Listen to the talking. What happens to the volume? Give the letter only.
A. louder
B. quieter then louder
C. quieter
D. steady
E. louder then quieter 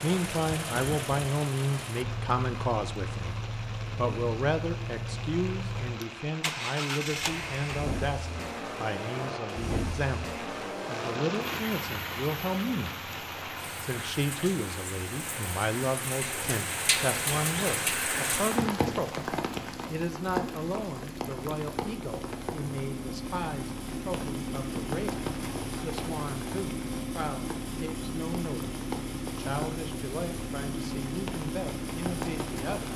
C.